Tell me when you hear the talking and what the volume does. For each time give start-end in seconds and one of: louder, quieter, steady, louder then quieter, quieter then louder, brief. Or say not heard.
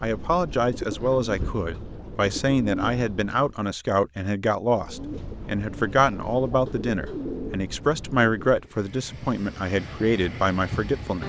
0.0-11.2 steady.